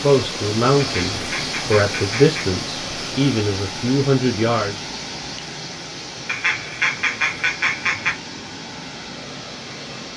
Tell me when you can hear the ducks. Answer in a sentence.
The ducks can be heard from 0.8 to 2.5 s and from 6.2 to 8.1 s.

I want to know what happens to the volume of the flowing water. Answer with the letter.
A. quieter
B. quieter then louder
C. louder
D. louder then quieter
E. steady
A.